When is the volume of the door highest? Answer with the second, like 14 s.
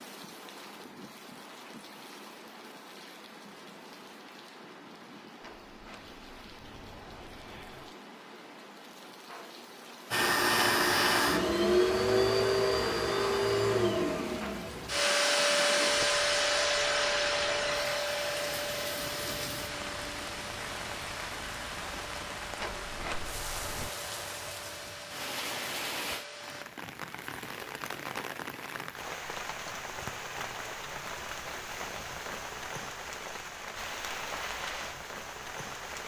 23 s.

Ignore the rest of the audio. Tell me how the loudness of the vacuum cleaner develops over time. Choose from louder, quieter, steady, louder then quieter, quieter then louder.
quieter.